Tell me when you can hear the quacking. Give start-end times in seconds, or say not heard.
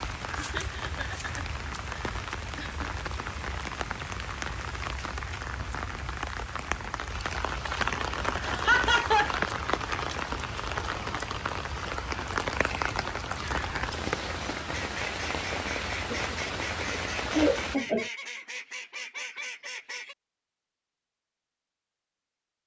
14.7-20.1.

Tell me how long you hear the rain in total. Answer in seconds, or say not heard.
18 s.